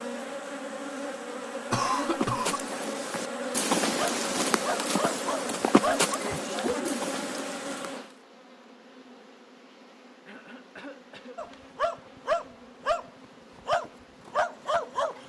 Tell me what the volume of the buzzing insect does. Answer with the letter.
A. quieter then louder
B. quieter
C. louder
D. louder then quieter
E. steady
B.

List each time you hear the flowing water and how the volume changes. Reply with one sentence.
The flowing water can't be heard in this clip.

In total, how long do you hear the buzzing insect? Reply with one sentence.
The buzzing insect can be heard for 15 seconds in total.